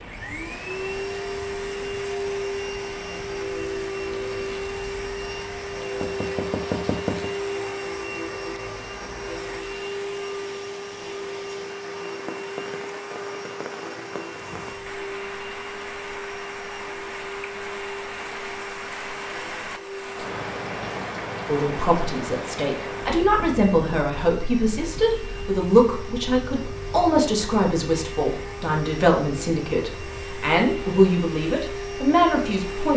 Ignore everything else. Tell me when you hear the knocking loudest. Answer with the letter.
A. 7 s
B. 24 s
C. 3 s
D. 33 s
A.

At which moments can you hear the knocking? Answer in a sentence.
The knocking can be heard from 6.0 to 7.3 s and from 23.4 to 24.0 s.